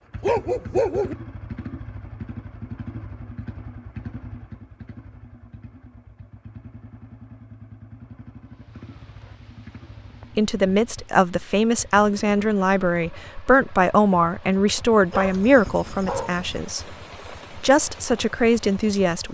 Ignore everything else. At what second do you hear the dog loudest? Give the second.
1 s.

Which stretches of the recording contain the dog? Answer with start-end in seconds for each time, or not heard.
0.2-1.1, 15.1-16.6.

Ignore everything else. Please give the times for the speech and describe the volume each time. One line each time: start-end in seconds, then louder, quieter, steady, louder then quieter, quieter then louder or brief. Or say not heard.
10.3-16.9 steady
17.6-19.2 brief.